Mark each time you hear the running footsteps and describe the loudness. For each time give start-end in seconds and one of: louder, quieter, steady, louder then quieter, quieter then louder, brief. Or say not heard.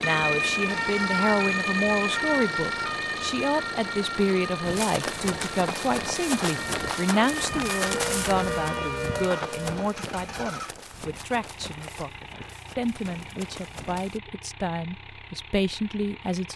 4.6-14.2 quieter.